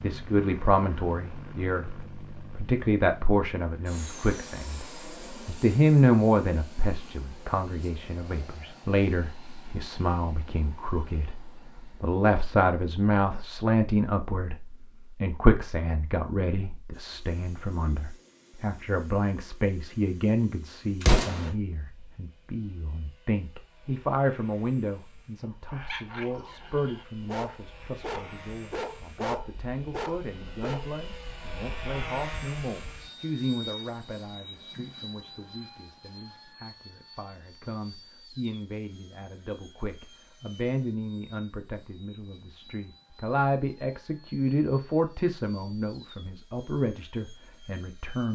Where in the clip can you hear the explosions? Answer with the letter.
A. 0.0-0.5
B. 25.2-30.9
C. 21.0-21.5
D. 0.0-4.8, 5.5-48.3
C.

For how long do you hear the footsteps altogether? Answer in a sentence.
The footsteps can't be heard in this clip.